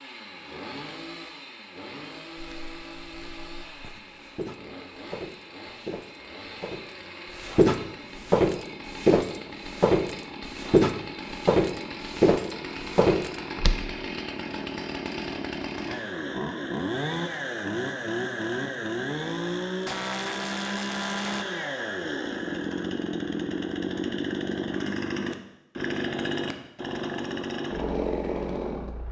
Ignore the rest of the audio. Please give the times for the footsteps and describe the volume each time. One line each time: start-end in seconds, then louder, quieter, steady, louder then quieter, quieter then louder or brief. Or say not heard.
2.4-13.8 louder.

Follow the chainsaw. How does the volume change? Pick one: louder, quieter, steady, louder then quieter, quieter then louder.
louder.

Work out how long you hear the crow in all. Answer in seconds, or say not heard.
not heard.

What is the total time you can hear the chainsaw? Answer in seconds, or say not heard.
29 s.